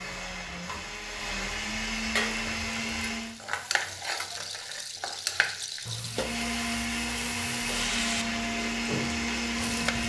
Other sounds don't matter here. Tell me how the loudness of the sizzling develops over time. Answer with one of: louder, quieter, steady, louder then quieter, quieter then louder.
steady.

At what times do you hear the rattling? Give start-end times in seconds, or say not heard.
3.9-6.2.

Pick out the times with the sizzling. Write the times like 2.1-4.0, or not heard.
2.1-10.0.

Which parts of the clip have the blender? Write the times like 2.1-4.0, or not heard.
0.0-3.4, 6.0-10.0.